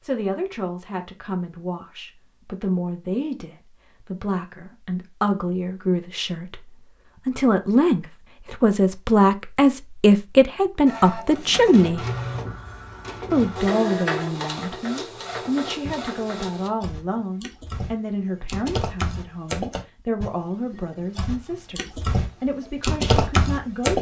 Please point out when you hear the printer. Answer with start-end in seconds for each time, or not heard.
10.8-16.7.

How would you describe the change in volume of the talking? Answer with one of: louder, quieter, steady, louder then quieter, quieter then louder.
louder then quieter.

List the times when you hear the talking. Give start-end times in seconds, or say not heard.
0.0-12.1, 13.3-23.9.